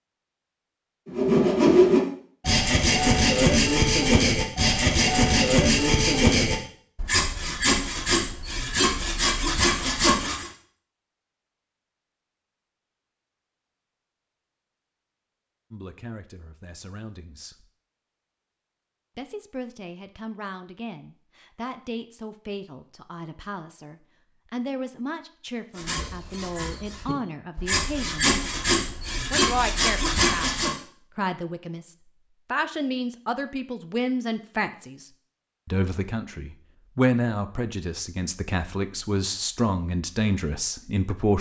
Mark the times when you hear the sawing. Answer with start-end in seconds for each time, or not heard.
1.1-10.5, 25.8-30.7.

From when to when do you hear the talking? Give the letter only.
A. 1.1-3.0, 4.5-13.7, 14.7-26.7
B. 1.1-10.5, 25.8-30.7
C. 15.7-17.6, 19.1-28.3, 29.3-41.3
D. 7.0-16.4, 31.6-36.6
C.